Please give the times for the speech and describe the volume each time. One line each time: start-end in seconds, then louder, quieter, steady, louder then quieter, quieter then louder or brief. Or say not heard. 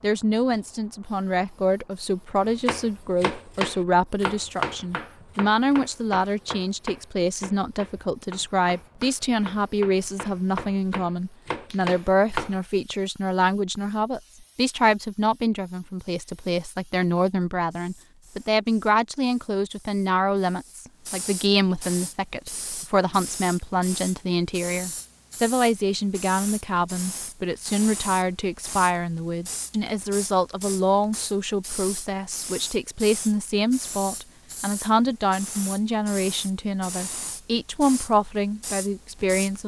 0.0-39.6 steady.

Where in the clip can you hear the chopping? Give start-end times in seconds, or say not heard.
2.4-12.6.